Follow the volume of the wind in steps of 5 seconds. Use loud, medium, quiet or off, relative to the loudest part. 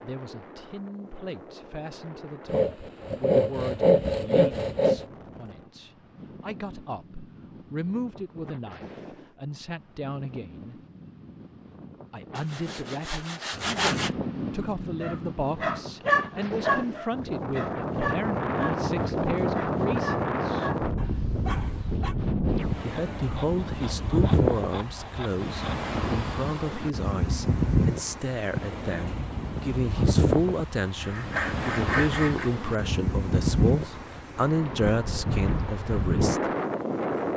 quiet, quiet, medium, loud, loud, loud, loud, loud.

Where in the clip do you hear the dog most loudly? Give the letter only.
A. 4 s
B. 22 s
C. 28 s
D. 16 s
D.